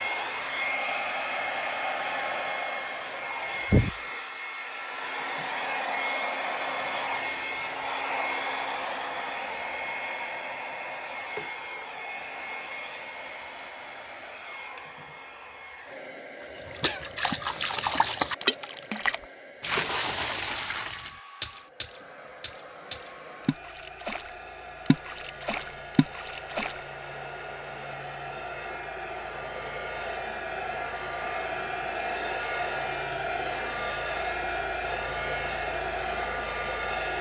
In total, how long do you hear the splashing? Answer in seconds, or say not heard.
10 s.